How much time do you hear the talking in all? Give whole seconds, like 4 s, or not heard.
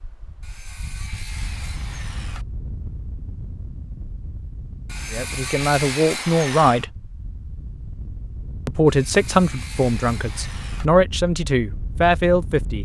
6 s.